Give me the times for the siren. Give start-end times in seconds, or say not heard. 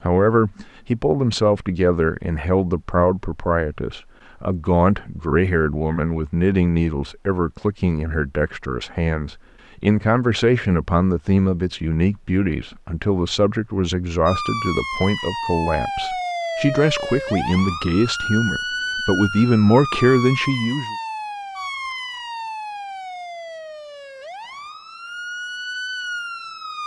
14.2-26.8.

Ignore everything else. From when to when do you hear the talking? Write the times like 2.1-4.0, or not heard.
0.0-20.9.